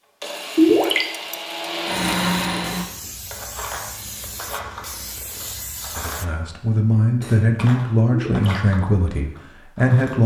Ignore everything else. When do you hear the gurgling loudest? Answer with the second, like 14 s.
1 s.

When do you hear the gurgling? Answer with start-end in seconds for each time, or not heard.
0.6-1.1, 8.1-8.6.